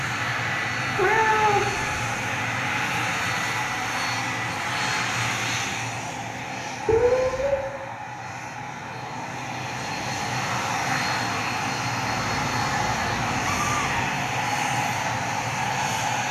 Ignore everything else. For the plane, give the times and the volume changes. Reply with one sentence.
You can hear the plane from 0.0 to 16.2 s, getting quieter then louder.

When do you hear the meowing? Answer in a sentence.
The meowing can be heard from 0.9 to 2.0 s, from 6.8 to 7.7 s and from 12.1 to 14.1 s.